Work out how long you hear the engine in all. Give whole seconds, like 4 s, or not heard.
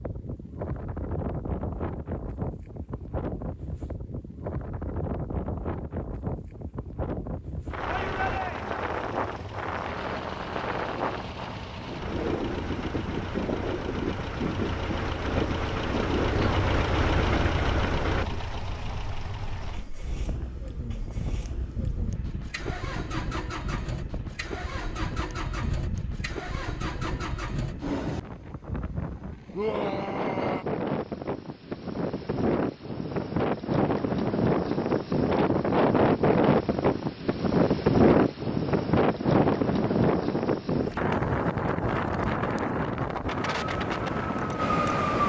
20 s.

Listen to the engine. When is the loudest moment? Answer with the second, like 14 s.
17 s.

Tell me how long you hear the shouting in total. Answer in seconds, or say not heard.
2 s.